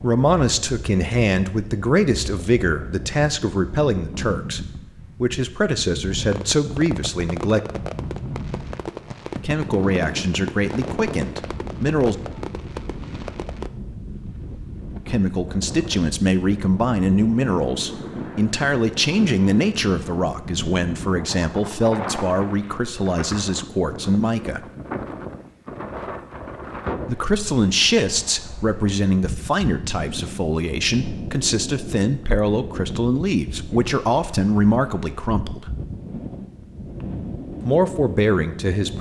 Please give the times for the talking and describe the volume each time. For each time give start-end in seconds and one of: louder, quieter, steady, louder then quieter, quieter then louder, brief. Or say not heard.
0.0-7.6 steady
9.4-12.2 brief
15.1-24.6 steady
27.1-35.7 steady
37.6-38.9 brief.